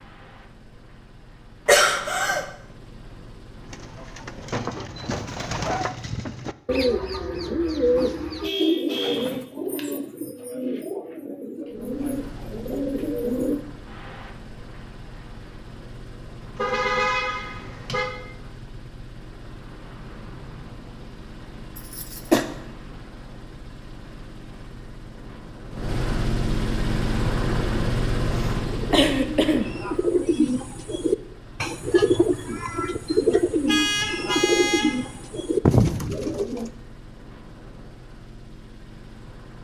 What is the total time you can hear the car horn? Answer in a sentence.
The car horn can be heard for 4 seconds in total.